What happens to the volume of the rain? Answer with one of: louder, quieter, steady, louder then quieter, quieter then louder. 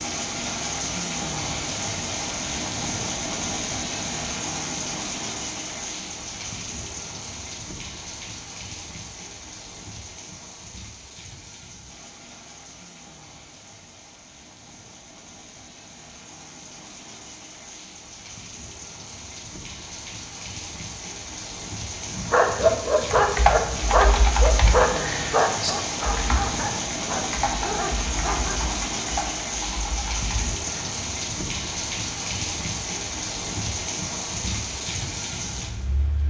quieter then louder.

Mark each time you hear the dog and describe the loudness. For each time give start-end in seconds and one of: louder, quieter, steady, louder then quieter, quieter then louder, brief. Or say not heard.
22.1-28.6 quieter.